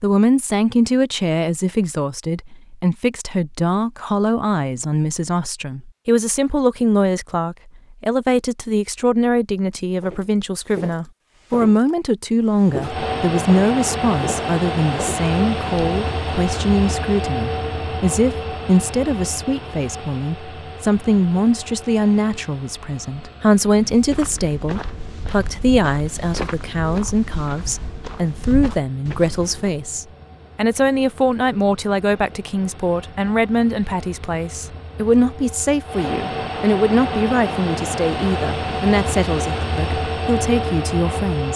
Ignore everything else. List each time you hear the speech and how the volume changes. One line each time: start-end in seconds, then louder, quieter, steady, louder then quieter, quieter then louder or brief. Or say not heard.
0.0-41.5 steady.